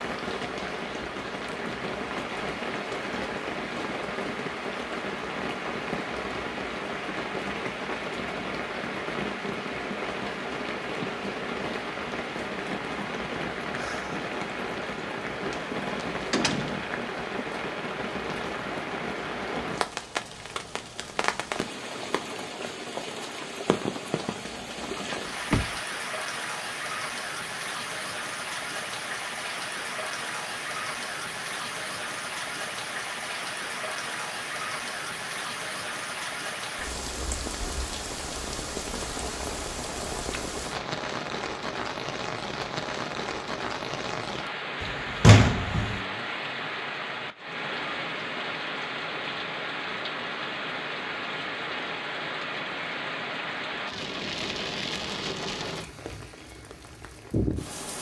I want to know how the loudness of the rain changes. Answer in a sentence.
The loudness of the rain stays about the same.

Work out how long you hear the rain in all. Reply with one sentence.
You can hear the rain for 58 seconds altogether.